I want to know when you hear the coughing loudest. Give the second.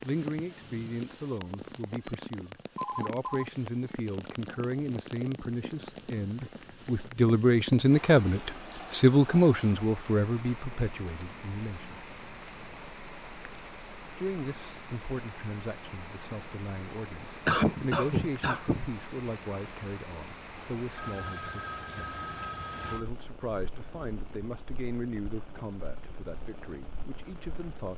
18 s.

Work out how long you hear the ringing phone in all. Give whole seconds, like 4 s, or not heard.
3 s.